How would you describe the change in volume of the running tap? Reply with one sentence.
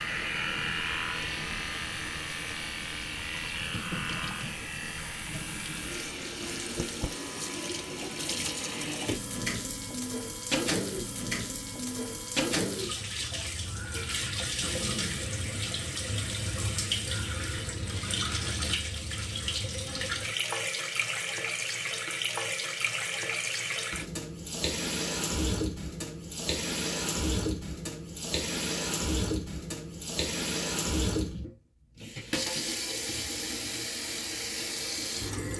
The loudness of the running tap goes up.